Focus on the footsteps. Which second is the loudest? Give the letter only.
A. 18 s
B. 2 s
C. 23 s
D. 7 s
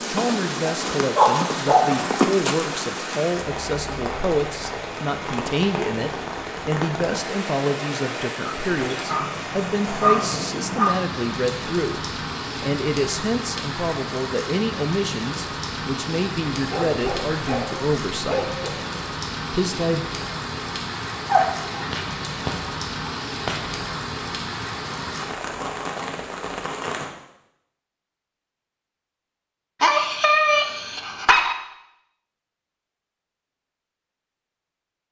B.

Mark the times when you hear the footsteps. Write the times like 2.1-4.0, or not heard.
0.0-3.0.